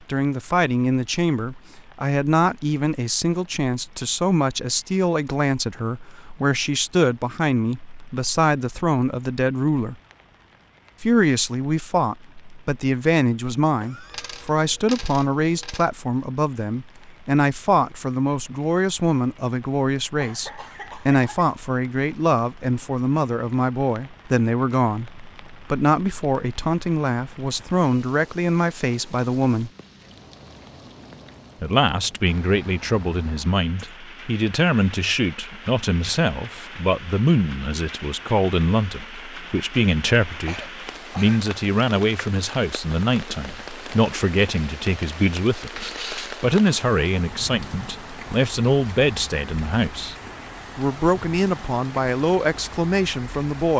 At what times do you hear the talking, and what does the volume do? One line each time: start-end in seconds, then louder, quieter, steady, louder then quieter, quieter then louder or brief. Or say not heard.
0.1-9.9 steady
11.0-29.7 steady
31.6-50.1 steady
50.8-53.7 brief.